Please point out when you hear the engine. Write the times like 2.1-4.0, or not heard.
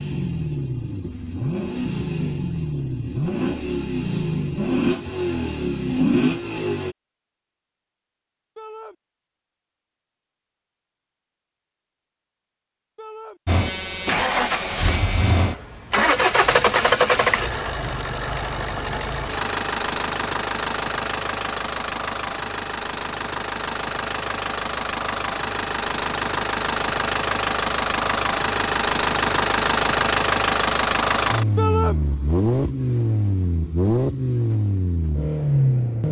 0.0-7.0, 13.4-36.0.